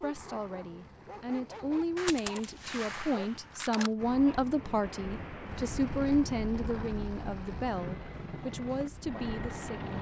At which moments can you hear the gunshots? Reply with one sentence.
You can hear the gunshots from 1.9 to 3.9 s.